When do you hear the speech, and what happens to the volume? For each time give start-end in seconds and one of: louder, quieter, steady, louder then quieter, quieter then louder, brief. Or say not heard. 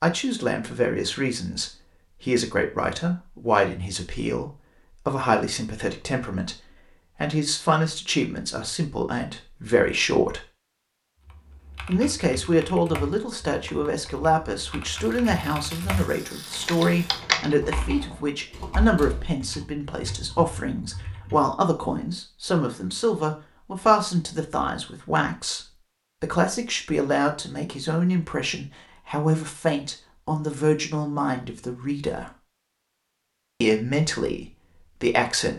0.0-10.4 steady
11.8-32.4 steady
33.6-35.5 brief.